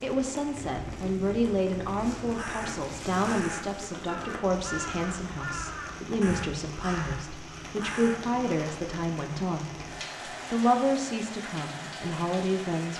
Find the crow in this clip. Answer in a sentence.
The crow can be heard from 2.2 to 8.3 s.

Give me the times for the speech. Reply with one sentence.
You can hear the speech from 0.0 to 9.7 s and from 10.5 to 12.9 s.